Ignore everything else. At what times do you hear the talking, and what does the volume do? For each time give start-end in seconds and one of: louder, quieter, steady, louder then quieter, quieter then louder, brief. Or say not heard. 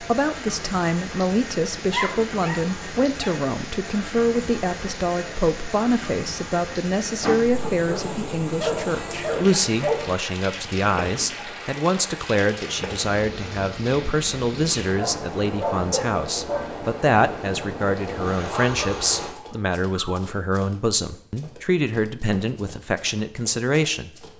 0.0-24.1 steady.